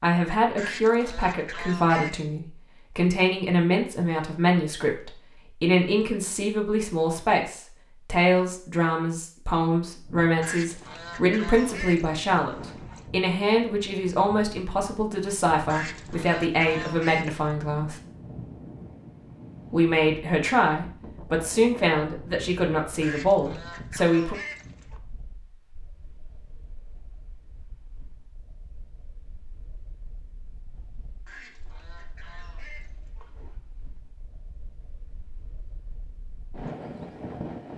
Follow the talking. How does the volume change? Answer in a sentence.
The loudness of the talking stays about the same.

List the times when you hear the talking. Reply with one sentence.
You can hear the talking from 0.0 to 17.9 s and from 19.7 to 24.4 s.